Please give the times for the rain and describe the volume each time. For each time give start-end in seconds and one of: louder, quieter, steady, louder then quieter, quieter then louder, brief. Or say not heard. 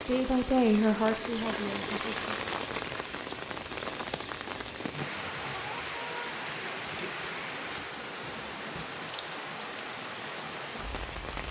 0.0-11.4 steady.